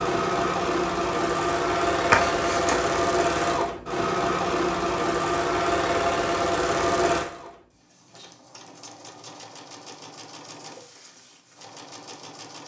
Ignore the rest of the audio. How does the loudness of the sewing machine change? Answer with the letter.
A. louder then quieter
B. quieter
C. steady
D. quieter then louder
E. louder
B.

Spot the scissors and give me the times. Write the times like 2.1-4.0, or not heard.
2.1-2.8.